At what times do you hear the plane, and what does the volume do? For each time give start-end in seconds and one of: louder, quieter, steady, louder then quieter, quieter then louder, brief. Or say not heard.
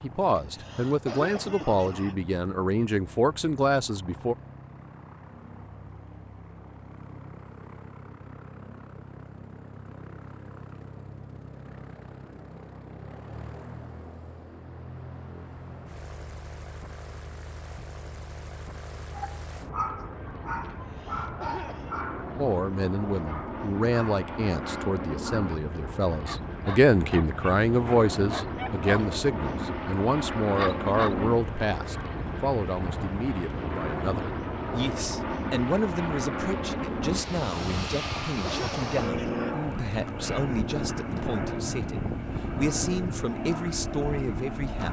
0.0-44.8 louder.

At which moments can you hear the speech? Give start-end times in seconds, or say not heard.
0.0-4.3, 22.4-44.8.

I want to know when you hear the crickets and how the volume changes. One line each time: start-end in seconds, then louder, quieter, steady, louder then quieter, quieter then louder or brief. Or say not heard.
not heard.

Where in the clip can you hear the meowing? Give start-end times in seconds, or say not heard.
not heard.